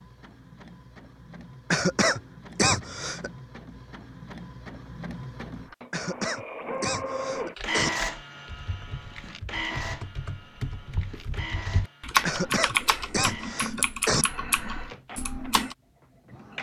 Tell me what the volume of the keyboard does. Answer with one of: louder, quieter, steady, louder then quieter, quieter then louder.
louder then quieter.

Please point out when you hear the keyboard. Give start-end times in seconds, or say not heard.
7.3-15.8.